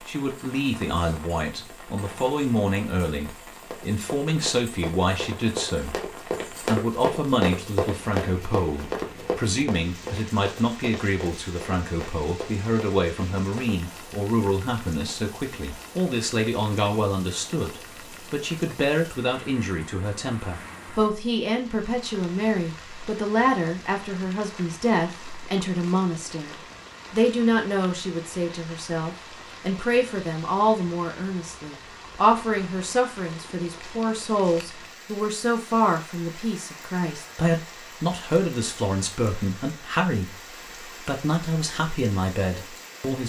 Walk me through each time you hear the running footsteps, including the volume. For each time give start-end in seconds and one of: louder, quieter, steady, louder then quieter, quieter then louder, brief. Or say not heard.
3.7-13.9 louder then quieter.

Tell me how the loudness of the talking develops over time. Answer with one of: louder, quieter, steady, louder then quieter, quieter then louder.
steady.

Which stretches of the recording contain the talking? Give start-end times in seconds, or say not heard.
0.0-43.2.